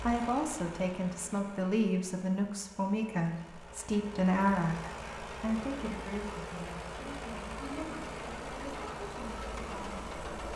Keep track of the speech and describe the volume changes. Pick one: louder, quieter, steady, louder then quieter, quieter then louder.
quieter.